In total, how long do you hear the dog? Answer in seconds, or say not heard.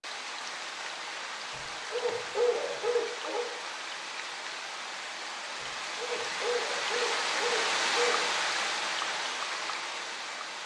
5 s.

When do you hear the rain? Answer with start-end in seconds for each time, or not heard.
0.0-10.6.